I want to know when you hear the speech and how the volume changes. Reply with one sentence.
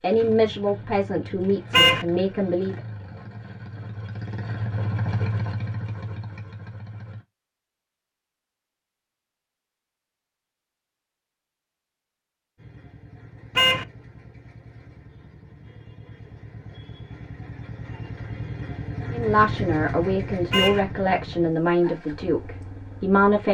You can hear the speech briefly from 0.0 to 2.8 s; and from 19.1 to 23.4 s, at a steady volume.